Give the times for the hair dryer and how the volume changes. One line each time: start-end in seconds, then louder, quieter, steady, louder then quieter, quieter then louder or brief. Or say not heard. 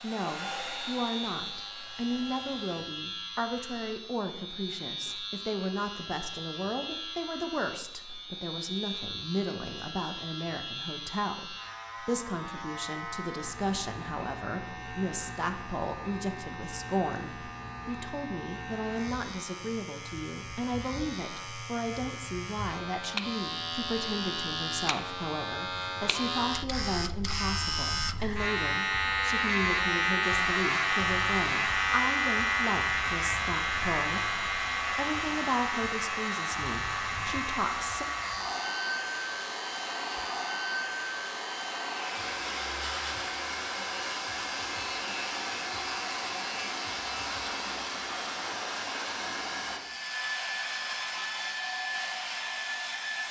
0.0-2.9 brief
30.2-53.2 steady.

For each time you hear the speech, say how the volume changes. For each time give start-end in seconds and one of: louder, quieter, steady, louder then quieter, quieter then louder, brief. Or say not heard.
0.0-38.0 steady.